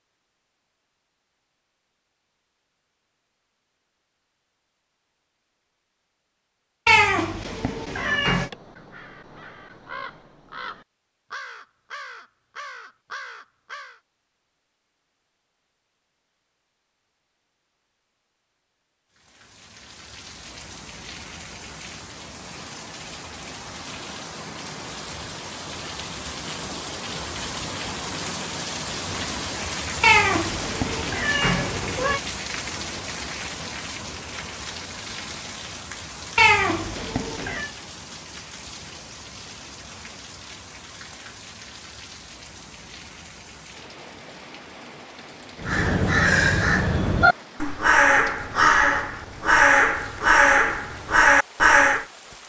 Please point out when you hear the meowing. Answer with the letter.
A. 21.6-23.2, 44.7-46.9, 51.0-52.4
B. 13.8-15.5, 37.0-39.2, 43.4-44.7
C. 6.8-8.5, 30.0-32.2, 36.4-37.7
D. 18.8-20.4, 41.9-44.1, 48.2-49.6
C.